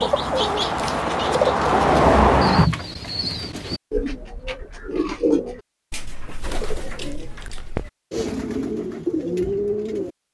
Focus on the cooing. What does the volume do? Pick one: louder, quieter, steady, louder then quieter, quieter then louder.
quieter then louder.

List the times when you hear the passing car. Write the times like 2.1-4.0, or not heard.
0.0-2.7.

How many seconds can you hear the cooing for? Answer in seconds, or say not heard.
10 s.